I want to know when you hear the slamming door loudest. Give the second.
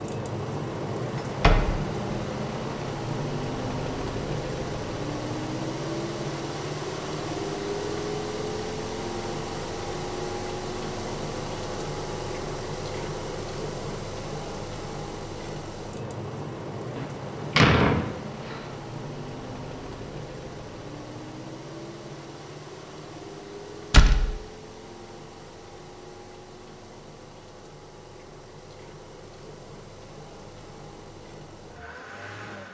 18 s.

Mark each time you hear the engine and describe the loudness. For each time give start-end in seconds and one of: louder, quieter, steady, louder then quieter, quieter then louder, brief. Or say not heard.
0.0-32.6 quieter.